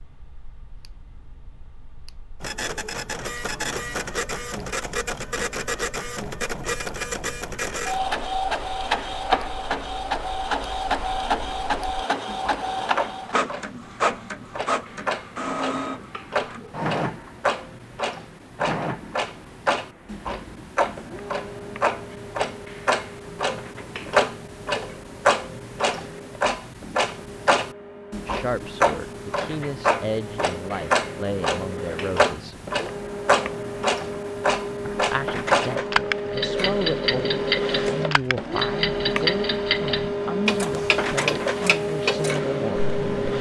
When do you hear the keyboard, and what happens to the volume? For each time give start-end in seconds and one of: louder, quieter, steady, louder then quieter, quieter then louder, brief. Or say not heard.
not heard.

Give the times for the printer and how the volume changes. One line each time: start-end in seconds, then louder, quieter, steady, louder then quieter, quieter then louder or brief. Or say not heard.
2.4-43.3 quieter then louder.